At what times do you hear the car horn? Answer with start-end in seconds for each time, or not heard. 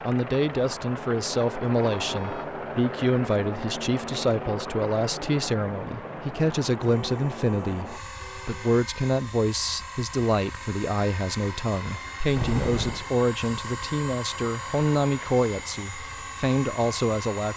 2.0-2.5, 6.8-8.8, 12.3-13.1.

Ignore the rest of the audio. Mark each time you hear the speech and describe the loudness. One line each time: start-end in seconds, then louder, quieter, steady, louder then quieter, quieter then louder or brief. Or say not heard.
0.0-17.5 steady.